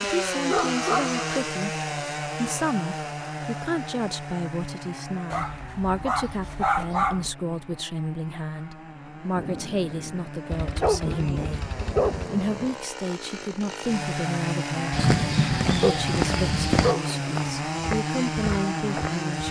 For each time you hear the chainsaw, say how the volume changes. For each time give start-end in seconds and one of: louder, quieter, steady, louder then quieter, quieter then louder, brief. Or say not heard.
0.0-19.4 quieter then louder.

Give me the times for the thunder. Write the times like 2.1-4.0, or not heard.
9.3-12.8.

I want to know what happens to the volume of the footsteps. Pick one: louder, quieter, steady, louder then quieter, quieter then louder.
quieter.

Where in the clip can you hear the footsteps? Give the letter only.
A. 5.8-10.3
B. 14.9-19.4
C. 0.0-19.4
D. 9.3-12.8
B.